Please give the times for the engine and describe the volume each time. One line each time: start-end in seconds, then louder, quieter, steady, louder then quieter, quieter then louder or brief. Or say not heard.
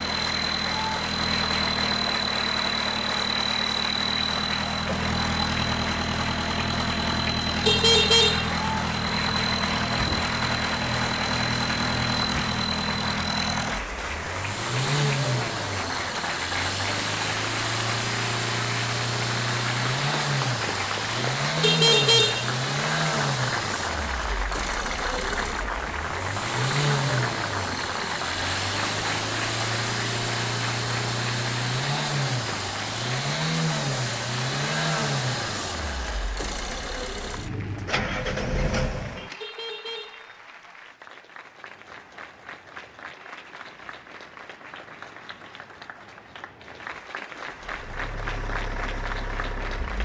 0.0-39.5 steady
41.4-50.0 louder.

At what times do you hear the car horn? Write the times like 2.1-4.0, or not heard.
7.7-8.5, 21.6-22.6, 39.4-40.7.